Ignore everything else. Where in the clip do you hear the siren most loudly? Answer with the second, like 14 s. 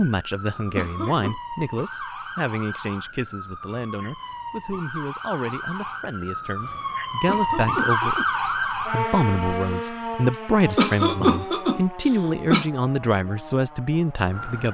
8 s.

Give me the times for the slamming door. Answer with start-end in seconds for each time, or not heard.
not heard.